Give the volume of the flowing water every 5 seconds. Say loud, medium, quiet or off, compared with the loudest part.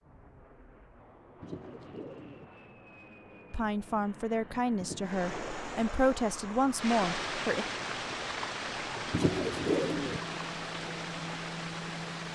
off, loud, loud.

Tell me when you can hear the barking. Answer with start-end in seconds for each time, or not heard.
not heard.